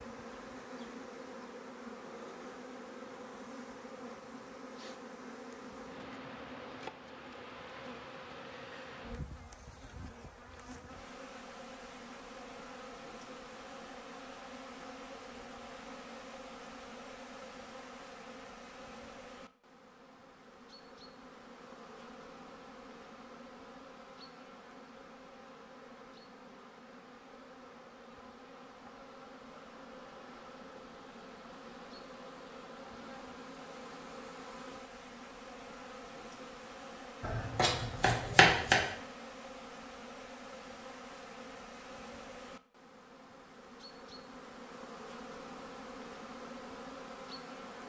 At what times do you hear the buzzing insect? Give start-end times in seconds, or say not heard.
0.0-47.8.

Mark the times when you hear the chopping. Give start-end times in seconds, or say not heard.
37.2-38.8.